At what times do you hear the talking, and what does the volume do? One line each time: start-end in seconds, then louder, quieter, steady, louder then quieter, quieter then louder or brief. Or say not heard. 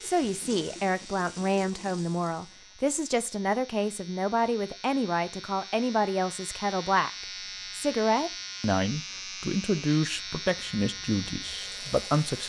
0.0-12.4 steady.